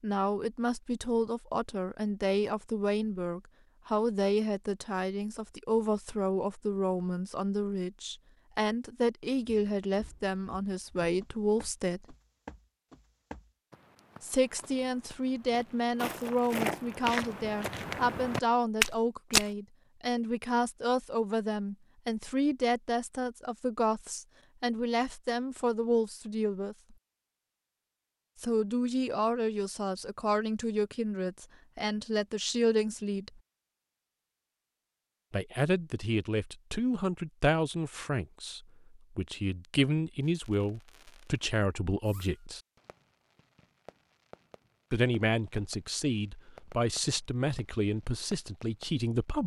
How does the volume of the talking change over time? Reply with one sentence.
The loudness of the talking stays about the same.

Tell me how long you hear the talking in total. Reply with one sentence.
The talking can be heard for 42 seconds in total.